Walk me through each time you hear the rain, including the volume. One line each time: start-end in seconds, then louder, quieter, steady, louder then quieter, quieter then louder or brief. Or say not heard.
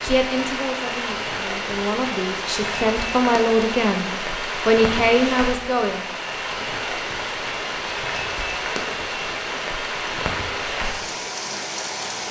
0.0-12.2 steady.